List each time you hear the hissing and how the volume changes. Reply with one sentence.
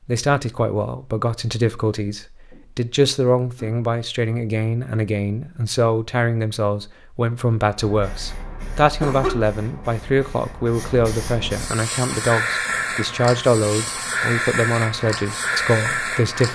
The hissing can be heard from 7.8 to 16.5 s, getting louder.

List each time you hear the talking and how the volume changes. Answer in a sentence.
You can hear the talking from 0.1 to 16.5 s, at a steady volume.